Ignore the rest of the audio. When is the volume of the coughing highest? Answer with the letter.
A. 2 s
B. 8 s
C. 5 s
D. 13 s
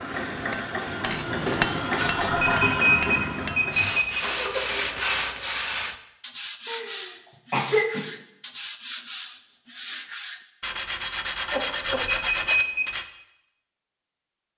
B.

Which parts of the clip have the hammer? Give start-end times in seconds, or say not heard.
0.0-3.8.